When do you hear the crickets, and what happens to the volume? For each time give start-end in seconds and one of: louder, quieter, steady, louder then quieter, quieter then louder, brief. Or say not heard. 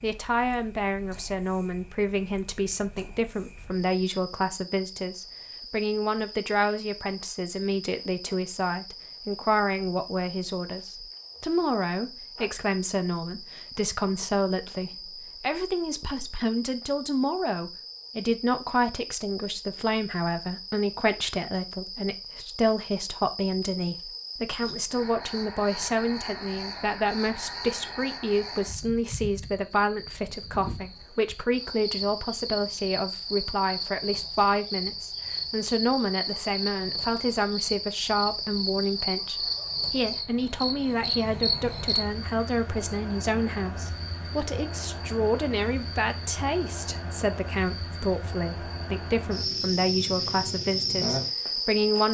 0.0-52.0 louder.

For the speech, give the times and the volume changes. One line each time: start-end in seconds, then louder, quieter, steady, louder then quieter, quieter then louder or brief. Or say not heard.
0.0-52.0 steady.